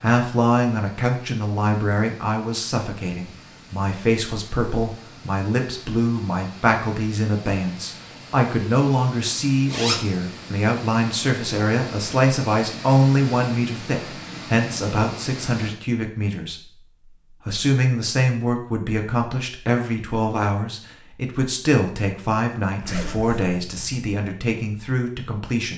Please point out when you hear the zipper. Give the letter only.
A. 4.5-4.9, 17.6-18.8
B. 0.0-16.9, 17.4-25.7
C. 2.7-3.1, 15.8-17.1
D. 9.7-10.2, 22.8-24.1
D.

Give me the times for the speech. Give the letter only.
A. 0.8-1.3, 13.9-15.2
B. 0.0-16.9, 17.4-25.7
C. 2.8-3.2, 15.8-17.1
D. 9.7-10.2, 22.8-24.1
B.